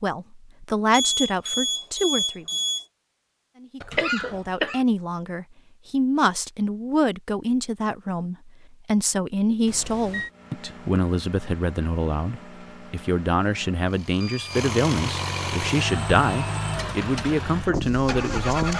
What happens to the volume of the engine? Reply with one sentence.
The volume of the engine goes up.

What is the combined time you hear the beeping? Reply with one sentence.
You can hear the beeping for 3 seconds altogether.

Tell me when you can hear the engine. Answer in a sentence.
The engine can be heard from 10.2 to 18.7 s.